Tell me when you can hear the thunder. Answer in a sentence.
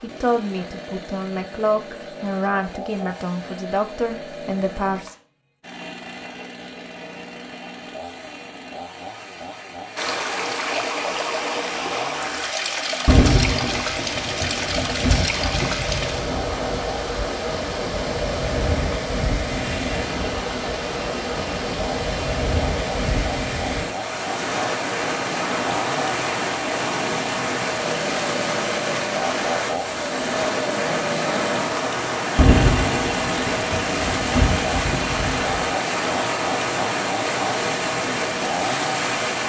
You can hear the thunder from 13.1 to 17.3 s and from 32.4 to 35.8 s.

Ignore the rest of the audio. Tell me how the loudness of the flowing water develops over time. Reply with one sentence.
The loudness of the flowing water stays about the same.